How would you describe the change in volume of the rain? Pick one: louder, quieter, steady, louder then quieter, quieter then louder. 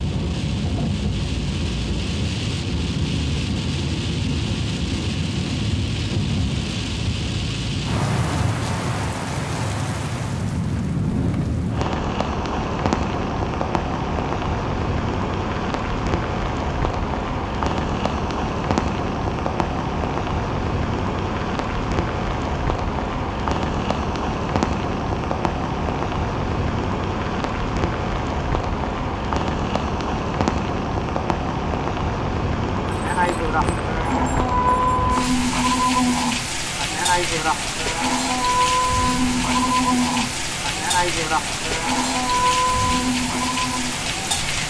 steady.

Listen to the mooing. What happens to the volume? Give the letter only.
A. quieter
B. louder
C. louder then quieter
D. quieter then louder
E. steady
E.